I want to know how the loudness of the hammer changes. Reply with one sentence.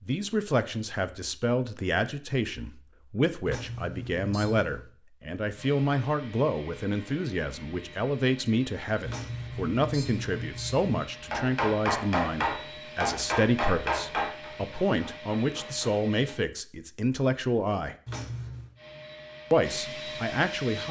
The volume of the hammer goes down.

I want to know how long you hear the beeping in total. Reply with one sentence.
You can hear the beeping for 4 seconds altogether.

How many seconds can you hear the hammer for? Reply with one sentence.
You can hear the hammer for 5 seconds altogether.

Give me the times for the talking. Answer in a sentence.
The talking can be heard from 0.0 to 17.9 s and from 19.5 to 20.8 s.